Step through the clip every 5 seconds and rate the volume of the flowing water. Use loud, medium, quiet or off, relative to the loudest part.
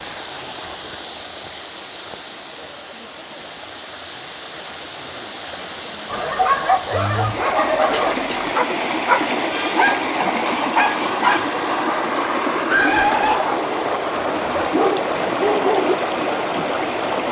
medium, loud, loud, loud.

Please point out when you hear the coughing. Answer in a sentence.
You can hear the coughing from 7.9 to 8.5 s.